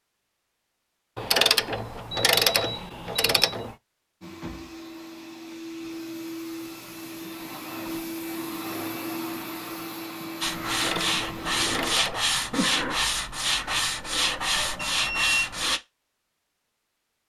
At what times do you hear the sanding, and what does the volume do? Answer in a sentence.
The sanding can be heard from 10.4 to 15.8 s, at a steady volume.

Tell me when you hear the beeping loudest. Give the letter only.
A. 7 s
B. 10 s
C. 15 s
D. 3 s
C.